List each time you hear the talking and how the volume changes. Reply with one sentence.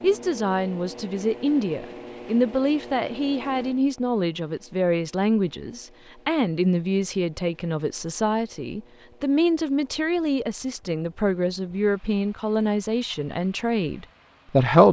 The talking can be heard from 0.0 to 14.8 s, at a steady volume.